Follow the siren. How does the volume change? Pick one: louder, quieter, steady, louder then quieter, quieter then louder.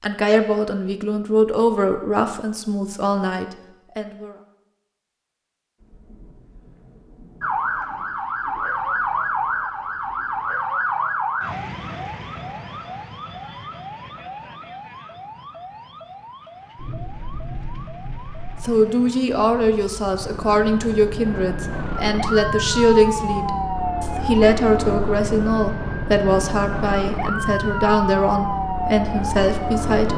quieter then louder.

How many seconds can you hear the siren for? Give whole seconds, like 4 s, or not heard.
23 s.